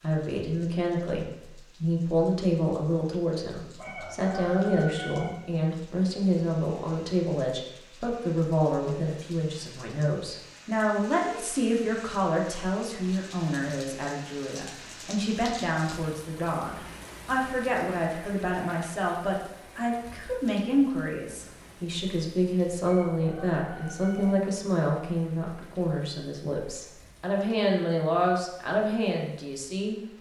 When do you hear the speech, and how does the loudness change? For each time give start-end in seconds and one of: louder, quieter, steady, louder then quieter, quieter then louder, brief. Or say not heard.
0.0-30.0 steady.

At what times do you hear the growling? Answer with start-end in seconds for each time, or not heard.
not heard.